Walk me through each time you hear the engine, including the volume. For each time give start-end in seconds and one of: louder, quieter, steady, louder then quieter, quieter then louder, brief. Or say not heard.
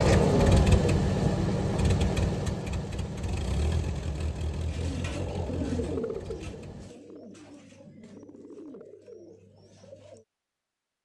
0.0-7.0 quieter.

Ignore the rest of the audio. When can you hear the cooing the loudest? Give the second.
6 s.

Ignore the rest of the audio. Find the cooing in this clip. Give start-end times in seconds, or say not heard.
4.7-10.2.